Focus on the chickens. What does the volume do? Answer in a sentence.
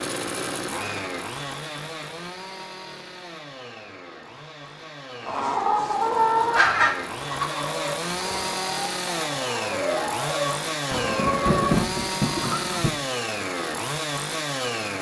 The volume of the chickens goes down, then up.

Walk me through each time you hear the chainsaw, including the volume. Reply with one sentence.
You can hear the chainsaw from 0.0 to 14.9 s, getting quieter then louder.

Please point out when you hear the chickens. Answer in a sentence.
The chickens can be heard from 5.2 to 12.8 s.